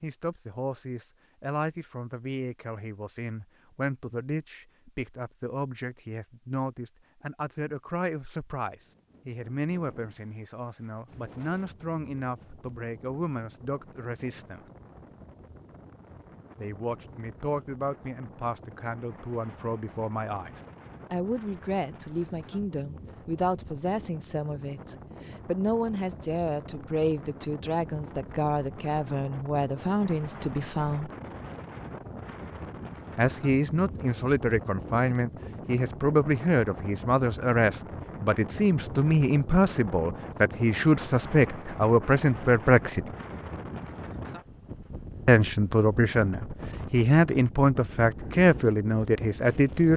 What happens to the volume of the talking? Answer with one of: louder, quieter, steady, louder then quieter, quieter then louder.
louder.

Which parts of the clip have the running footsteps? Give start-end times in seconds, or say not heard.
not heard.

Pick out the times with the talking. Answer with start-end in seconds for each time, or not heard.
0.0-14.6, 16.6-31.1, 33.1-43.0, 45.2-49.9.